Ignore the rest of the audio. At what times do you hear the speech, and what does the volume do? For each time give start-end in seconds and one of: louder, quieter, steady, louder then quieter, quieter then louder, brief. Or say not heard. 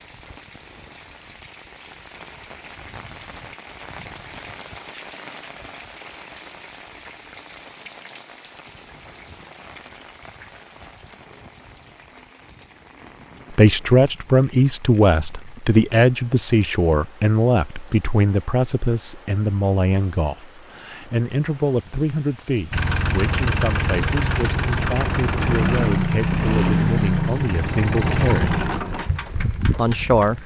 13.5-28.7 quieter
29.6-30.4 brief.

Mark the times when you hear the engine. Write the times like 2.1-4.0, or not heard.
22.7-30.4.